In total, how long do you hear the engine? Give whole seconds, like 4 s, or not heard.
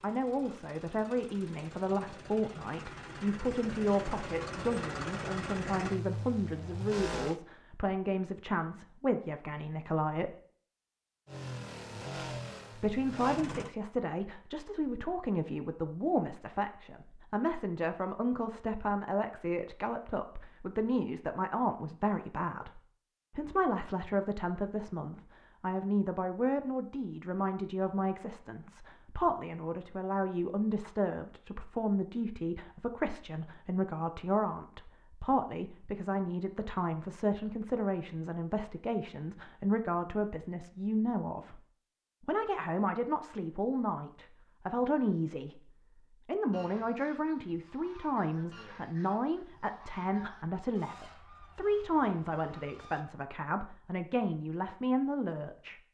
10 s.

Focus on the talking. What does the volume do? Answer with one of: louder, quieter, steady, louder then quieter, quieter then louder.
steady.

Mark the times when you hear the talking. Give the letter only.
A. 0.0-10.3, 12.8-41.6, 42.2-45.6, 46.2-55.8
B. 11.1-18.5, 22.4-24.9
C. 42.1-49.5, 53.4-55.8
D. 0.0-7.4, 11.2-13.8
A.